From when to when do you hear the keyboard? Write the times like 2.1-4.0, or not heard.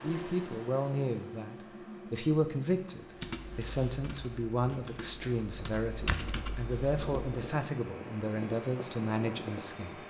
3.1-7.5.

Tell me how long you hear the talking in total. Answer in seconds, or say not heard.
10 s.